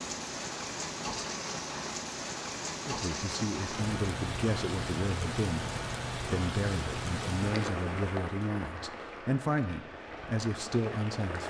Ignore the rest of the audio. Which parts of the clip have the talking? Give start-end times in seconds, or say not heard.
2.9-11.4.